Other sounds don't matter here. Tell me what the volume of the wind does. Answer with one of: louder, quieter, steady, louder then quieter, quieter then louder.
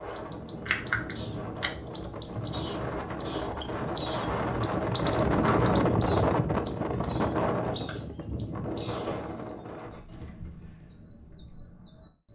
louder then quieter.